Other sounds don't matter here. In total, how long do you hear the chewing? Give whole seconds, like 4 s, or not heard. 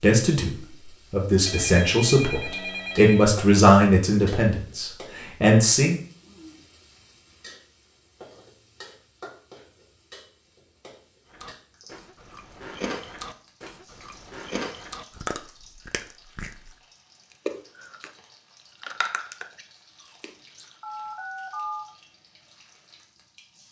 8 s.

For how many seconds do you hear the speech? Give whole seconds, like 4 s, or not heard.
6 s.